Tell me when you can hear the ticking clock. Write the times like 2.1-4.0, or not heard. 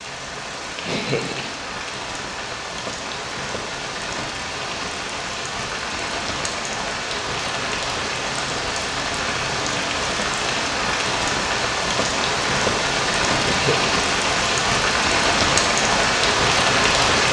not heard.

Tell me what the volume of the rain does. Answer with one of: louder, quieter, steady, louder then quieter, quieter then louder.
louder.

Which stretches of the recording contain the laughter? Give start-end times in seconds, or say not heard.
0.8-1.6, 13.3-14.1.